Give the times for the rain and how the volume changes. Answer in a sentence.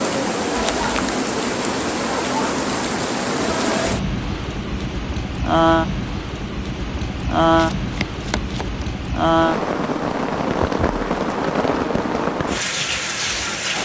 You can hear the rain from 0.0 to 13.8 s, at a steady volume.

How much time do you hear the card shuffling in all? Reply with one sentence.
The card shuffling can be heard for 2 seconds in total.